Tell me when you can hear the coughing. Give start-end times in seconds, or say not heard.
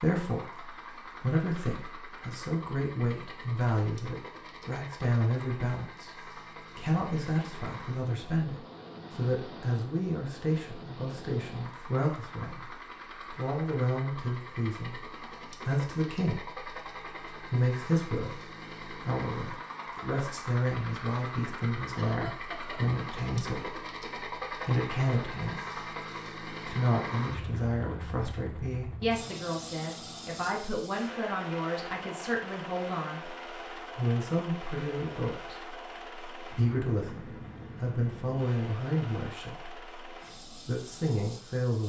21.4-22.8.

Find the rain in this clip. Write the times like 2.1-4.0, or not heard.
not heard.